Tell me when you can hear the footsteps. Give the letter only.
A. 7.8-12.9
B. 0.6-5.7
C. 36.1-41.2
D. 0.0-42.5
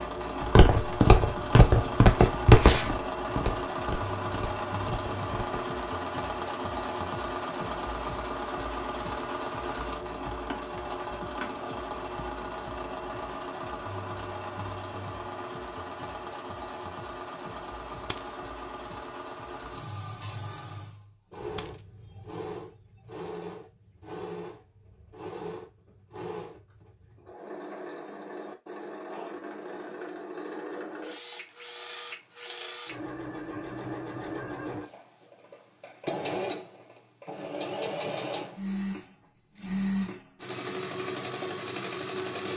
B.